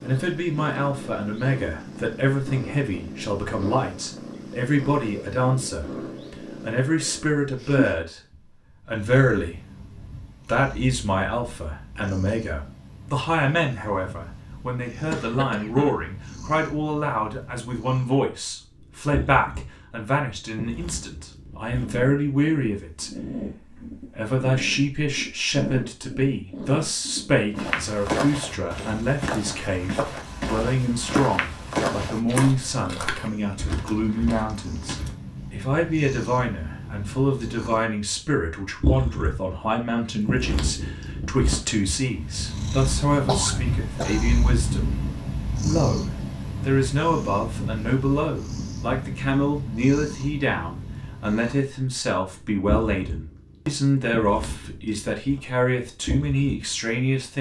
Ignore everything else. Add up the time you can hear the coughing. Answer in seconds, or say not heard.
2 s.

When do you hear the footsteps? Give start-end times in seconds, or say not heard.
27.6-35.1.